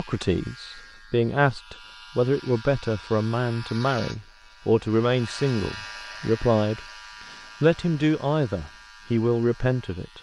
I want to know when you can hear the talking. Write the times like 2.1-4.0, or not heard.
0.0-6.8, 7.6-10.1.